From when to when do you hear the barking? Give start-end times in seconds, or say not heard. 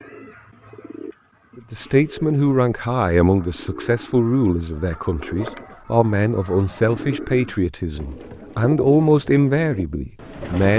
not heard.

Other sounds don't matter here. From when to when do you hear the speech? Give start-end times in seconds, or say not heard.
1.6-10.7.